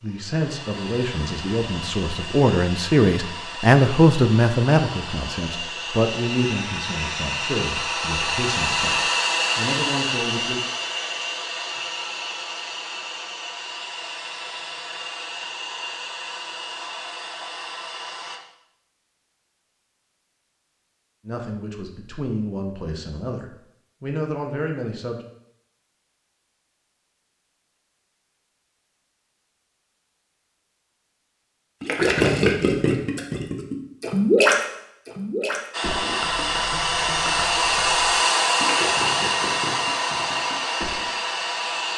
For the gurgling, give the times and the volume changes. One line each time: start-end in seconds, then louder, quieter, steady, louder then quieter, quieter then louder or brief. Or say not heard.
31.8-41.1 quieter.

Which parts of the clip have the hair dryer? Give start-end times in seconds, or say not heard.
0.0-18.4, 35.7-41.9.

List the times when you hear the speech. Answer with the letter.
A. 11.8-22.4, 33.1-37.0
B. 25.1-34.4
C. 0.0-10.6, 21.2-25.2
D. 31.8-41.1
C.